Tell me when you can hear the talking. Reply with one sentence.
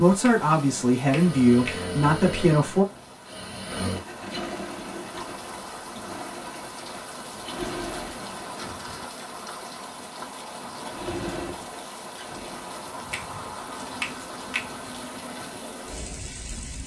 You can hear the talking from 0.0 to 2.9 s.